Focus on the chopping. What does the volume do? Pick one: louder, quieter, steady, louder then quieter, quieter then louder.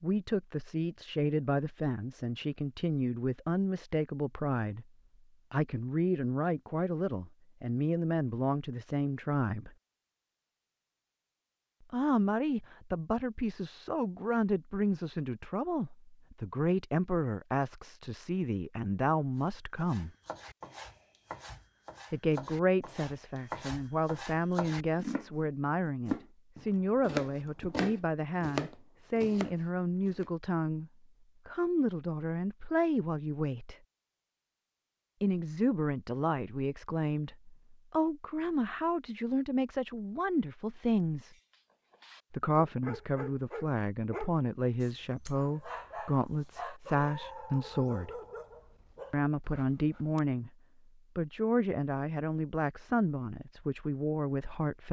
louder.